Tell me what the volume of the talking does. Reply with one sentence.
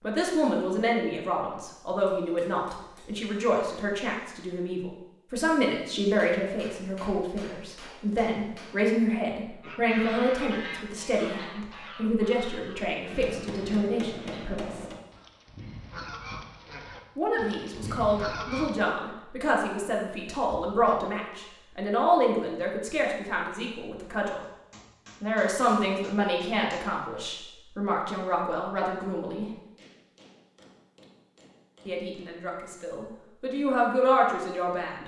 The loudness of the talking stays about the same.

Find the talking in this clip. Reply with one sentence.
You can hear the talking from 0.0 to 14.8 s, from 17.1 to 24.4 s, from 25.2 to 29.5 s and from 31.9 to 35.0 s.